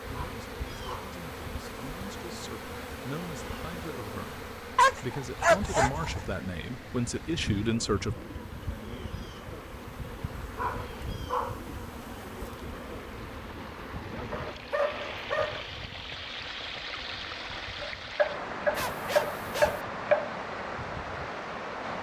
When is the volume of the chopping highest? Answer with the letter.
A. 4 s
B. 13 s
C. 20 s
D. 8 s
C.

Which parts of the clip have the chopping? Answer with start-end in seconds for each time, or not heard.
17.8-20.3.